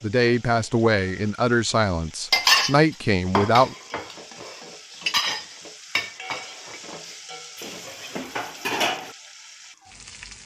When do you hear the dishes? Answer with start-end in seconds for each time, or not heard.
2.3-9.2.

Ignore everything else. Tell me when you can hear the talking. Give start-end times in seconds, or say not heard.
0.0-3.8.